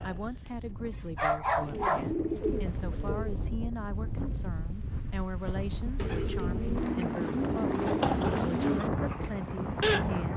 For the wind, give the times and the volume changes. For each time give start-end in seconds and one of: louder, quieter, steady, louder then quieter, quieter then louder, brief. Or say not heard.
0.0-10.3 louder.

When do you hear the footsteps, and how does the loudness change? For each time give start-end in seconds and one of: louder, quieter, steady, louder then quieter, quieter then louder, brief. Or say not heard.
not heard.